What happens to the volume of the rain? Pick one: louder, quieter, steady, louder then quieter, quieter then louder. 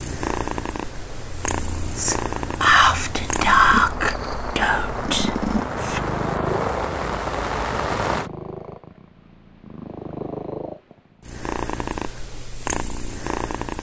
louder.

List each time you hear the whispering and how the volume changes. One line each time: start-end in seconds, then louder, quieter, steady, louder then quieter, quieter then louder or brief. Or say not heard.
1.9-6.0 quieter.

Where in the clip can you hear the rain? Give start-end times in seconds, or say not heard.
0.0-8.3.